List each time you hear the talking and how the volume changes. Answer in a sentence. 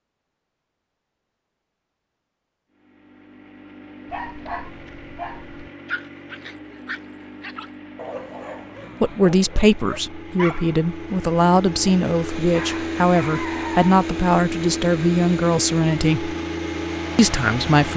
You can hear the talking from 9.0 to 16.4 s, at a steady volume; and briefly from 17.1 to 17.9 s.